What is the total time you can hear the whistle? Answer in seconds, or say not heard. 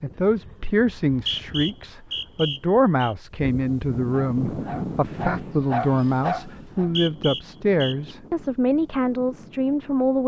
4 s.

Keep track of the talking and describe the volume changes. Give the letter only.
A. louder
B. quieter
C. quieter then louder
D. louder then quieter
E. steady
E.